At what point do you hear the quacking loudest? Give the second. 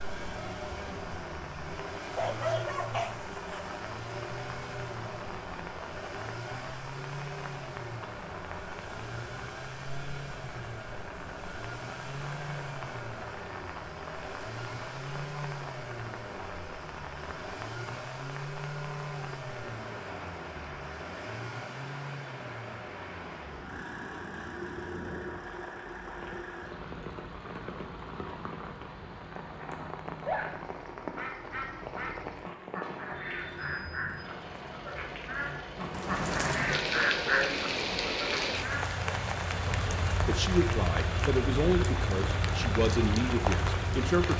37 s.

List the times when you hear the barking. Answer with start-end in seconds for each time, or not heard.
2.1-3.8.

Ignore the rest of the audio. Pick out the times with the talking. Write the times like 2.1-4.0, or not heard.
39.9-44.3.